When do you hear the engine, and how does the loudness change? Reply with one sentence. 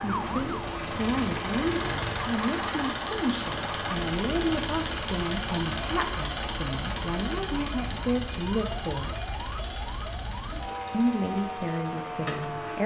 The engine can be heard from 0.0 to 12.8 s, getting quieter.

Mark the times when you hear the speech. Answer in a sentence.
The speech can be heard from 0.0 to 9.3 s and from 10.9 to 12.8 s.